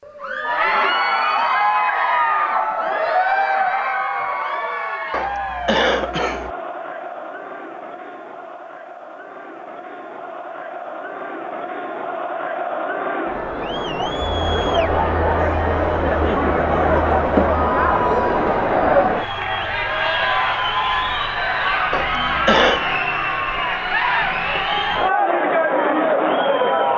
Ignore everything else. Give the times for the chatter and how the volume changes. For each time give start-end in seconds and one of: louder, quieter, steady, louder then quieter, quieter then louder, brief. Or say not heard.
0.1-26.9 quieter then louder.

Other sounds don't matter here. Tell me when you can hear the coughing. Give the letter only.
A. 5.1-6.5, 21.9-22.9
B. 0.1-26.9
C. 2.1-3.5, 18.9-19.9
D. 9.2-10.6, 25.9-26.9
A.